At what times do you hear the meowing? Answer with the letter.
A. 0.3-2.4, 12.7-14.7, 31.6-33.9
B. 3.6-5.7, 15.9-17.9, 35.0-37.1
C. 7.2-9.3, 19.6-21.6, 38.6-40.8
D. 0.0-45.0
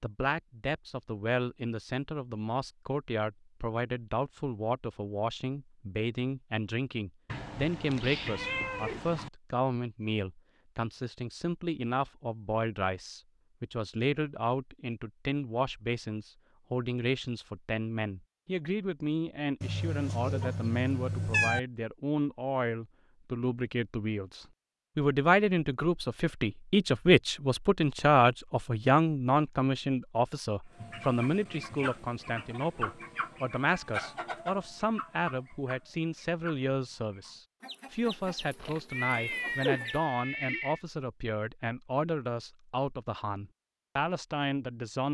C.